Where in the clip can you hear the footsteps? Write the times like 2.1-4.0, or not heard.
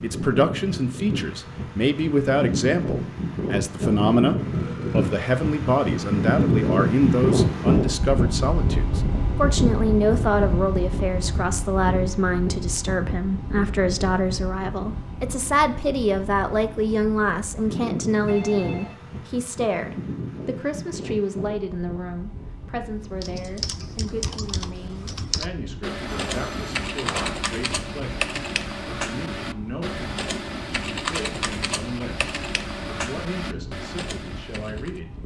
not heard.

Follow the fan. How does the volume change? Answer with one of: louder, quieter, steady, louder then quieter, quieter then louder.
quieter.